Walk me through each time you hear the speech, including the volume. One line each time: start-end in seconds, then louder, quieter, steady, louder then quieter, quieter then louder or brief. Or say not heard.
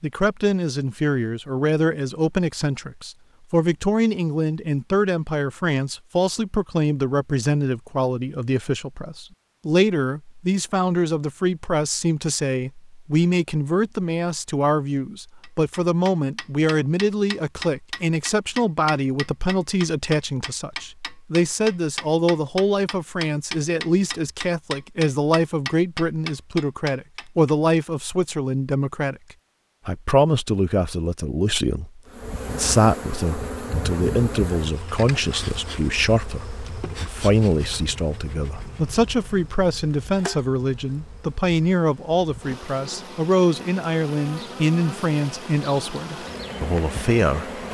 0.0-29.1 steady
29.9-47.6 steady.